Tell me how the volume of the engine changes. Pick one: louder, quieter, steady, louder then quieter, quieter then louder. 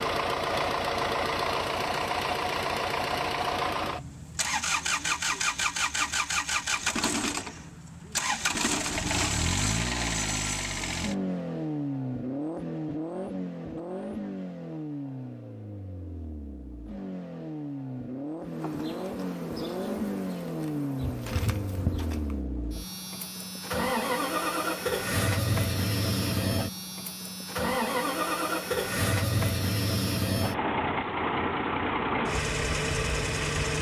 quieter then louder.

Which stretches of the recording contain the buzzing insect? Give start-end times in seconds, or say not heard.
18.4-22.4.